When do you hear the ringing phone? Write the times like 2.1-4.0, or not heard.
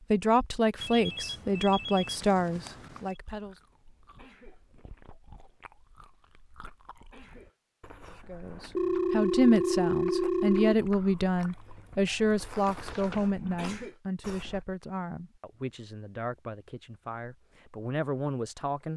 0.8-3.1, 8.8-10.8, 12.7-13.3.